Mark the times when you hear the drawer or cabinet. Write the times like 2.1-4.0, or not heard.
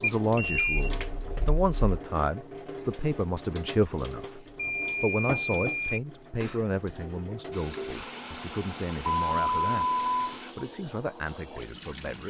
not heard.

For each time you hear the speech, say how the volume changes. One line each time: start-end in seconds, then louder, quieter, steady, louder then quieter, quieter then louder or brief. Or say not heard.
0.0-12.2 quieter.